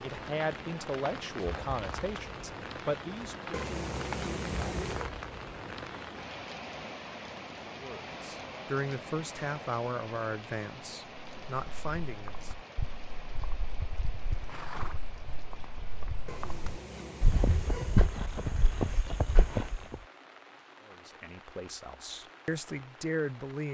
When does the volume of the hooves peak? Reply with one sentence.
The loudest moment of the hooves is at 18 seconds.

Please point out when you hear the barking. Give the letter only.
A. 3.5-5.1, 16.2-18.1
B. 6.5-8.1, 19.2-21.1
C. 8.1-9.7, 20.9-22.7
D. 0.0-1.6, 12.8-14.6
A.